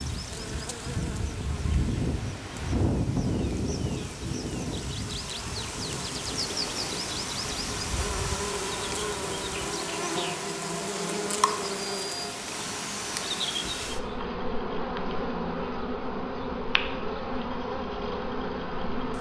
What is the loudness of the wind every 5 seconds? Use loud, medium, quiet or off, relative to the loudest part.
loud, medium, off, off.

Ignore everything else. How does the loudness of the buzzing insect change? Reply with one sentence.
The loudness of the buzzing insect goes up.